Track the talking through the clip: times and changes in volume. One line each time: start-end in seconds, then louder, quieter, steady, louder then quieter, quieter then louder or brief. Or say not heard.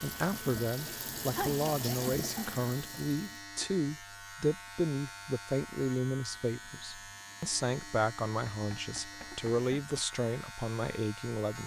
0.0-11.6 steady.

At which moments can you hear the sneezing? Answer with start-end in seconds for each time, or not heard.
1.4-1.9.